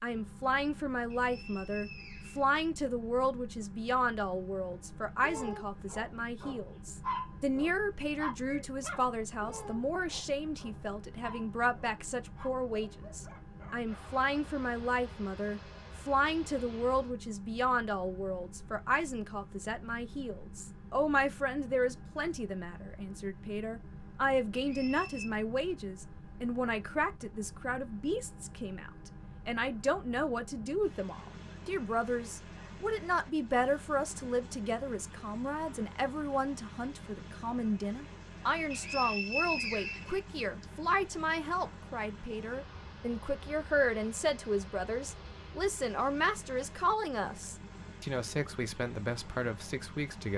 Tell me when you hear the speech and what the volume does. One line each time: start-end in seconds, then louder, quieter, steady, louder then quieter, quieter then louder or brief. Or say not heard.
0.0-50.3 steady.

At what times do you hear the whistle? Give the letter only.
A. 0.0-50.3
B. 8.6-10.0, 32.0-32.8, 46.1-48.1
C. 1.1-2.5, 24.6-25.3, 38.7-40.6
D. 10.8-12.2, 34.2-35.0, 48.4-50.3
C.